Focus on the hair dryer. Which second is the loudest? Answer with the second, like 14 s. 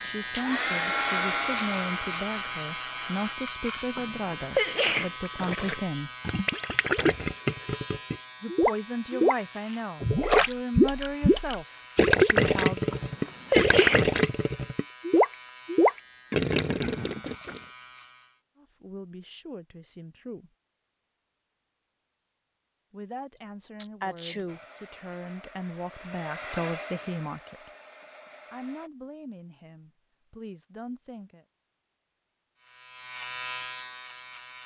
1 s.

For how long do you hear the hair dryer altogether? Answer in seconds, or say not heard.
8 s.